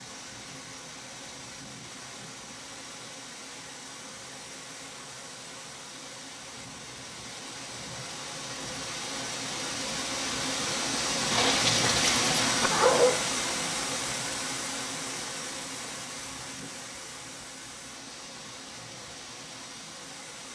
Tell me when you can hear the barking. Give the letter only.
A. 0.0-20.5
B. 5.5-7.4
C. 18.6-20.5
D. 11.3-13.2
D.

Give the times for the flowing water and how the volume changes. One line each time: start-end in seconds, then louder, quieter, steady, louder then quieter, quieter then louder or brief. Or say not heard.
0.0-20.5 louder then quieter.